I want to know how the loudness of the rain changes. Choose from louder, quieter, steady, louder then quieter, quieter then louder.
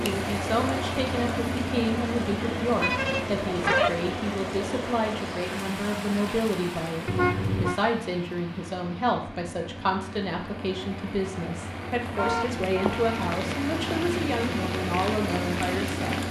quieter then louder.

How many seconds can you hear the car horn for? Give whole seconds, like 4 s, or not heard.
3 s.